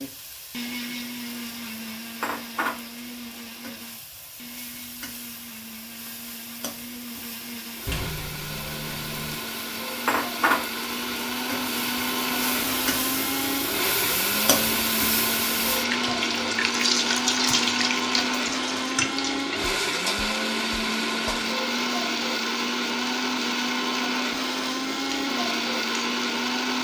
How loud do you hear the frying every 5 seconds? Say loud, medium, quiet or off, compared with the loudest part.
medium, quiet, loud, loud, medium, medium.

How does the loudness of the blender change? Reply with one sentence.
The volume of the blender goes up.